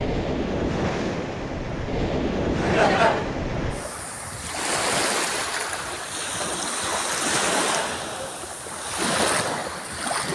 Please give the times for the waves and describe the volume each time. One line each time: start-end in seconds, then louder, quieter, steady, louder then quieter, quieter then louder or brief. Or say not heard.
0.0-10.3 steady.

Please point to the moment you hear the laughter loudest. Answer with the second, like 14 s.
3 s.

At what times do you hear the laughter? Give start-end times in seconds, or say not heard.
2.5-3.4, 7.3-8.6.